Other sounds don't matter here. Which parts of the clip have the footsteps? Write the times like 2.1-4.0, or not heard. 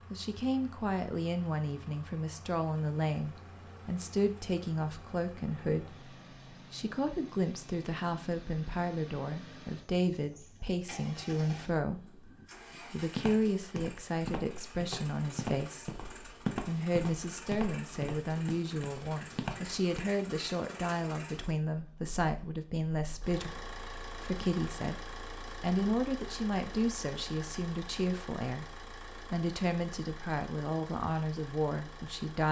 12.9-20.1.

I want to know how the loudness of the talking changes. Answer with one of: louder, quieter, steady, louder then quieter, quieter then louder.
steady.